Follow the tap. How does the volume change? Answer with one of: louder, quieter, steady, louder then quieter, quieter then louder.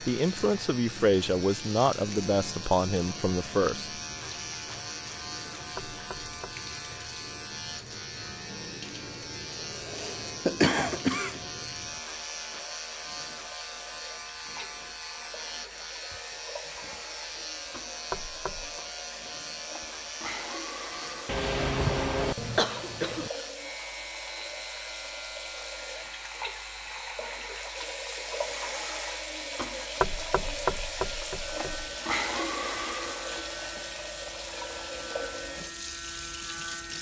louder.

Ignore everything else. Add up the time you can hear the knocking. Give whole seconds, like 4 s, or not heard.
3 s.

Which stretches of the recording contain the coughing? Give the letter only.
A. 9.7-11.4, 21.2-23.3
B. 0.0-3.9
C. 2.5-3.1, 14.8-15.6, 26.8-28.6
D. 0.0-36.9
A.